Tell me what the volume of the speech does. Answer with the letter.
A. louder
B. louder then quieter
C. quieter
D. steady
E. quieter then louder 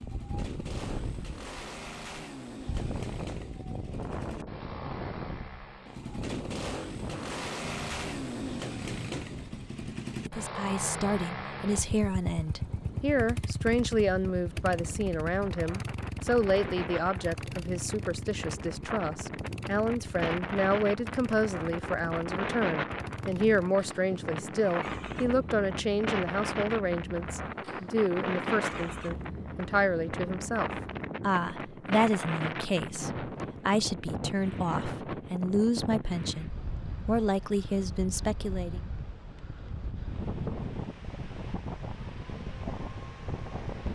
D.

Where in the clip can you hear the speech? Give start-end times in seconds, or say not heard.
10.2-38.8.